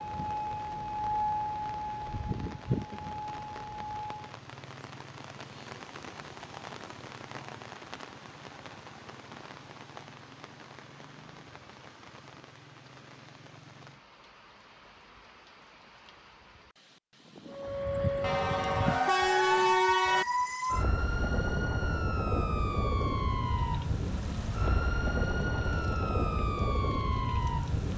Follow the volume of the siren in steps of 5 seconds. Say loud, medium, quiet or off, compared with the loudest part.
medium, off, off, loud, loud, loud.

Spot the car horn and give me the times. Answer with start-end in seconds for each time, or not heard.
18.2-20.2.